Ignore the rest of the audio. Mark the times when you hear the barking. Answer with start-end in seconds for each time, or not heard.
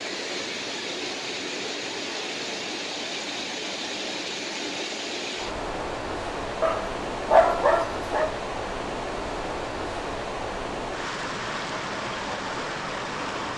6.6-8.3.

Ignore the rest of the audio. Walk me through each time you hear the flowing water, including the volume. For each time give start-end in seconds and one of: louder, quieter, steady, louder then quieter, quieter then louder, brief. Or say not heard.
0.0-13.5 steady.